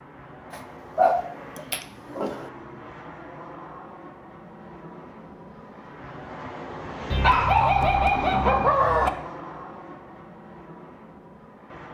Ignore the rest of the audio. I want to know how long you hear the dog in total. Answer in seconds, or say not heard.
4 s.